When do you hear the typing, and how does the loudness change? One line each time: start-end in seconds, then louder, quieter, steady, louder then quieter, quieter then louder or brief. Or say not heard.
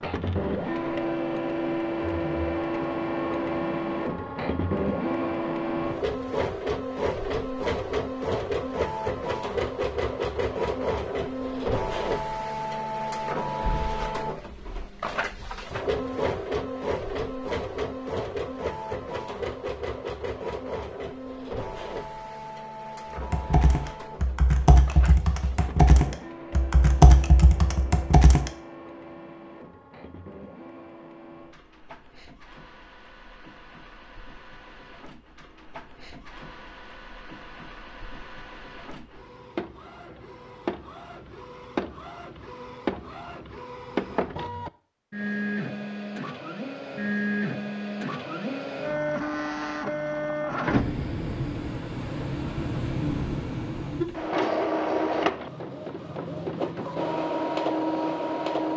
23.1-28.5 louder then quieter.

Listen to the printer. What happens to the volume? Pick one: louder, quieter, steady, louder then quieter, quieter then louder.
quieter then louder.